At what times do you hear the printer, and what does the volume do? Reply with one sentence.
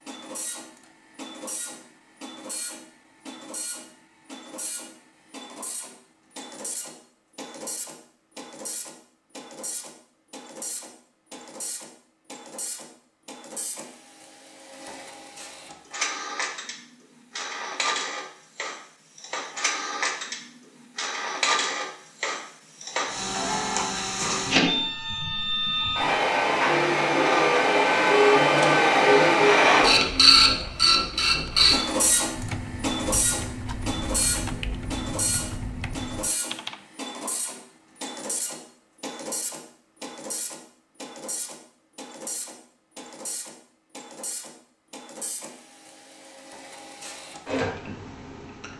The printer can be heard from 0.0 to 48.7 s, getting louder then quieter.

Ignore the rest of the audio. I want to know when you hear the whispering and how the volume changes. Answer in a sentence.
You can't hear the whispering here.